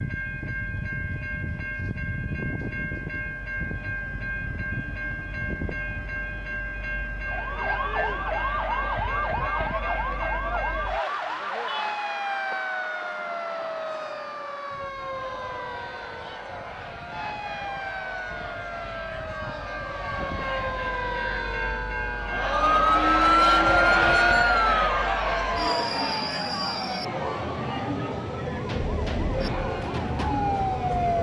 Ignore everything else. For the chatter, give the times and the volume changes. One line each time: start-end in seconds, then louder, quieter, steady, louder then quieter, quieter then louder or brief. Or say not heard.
12.8-31.1 louder then quieter.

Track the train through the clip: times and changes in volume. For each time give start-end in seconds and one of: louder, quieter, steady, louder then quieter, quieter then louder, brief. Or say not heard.
0.0-31.1 quieter then louder.